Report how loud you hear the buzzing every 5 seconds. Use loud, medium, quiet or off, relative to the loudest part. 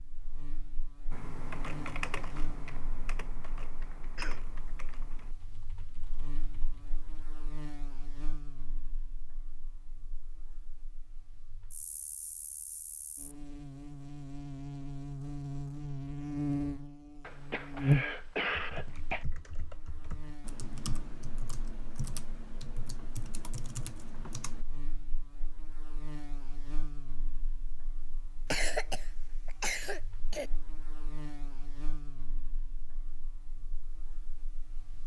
quiet, quiet, quiet, loud, quiet, quiet, quiet.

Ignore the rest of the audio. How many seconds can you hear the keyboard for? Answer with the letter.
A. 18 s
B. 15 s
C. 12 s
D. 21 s
C.